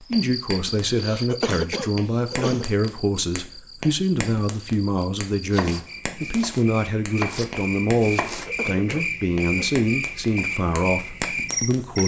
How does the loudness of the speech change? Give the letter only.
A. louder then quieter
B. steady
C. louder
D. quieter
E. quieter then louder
B.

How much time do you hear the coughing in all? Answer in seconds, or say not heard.
3 s.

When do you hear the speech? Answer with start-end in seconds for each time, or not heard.
0.0-12.0.